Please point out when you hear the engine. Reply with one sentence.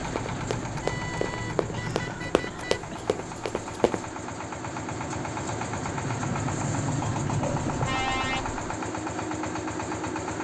You can hear the engine from 0.0 to 10.4 s.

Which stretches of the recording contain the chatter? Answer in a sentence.
The chatter can't be heard in this clip.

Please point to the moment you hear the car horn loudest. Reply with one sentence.
The loudest moment of the car horn is at 8 seconds.